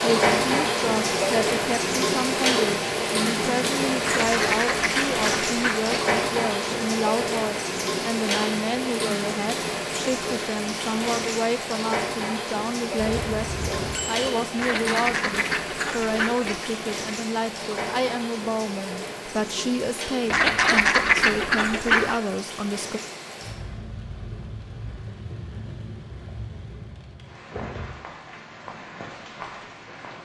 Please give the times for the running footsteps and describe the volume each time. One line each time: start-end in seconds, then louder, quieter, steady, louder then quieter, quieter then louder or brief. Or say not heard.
not heard.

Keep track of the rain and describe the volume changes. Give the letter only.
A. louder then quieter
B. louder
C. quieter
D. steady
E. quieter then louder
C.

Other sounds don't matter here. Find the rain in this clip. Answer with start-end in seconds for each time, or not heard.
0.0-30.1.